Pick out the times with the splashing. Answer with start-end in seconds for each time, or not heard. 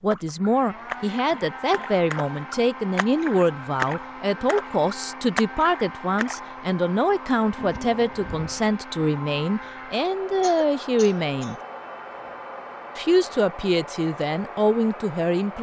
0.1-6.5.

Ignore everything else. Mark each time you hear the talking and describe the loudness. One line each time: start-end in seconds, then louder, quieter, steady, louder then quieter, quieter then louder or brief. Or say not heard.
0.0-11.6 steady
12.9-15.5 brief.